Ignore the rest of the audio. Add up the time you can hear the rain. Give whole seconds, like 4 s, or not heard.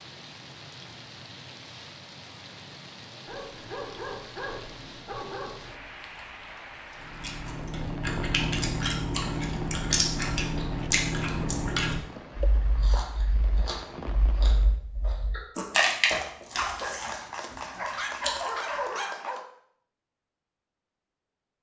15 s.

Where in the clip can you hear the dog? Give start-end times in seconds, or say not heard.
3.2-6.0, 16.6-19.4.